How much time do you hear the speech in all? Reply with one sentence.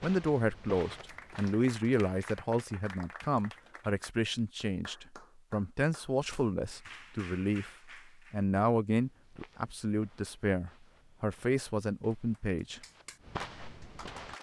The speech can be heard for 13 seconds in total.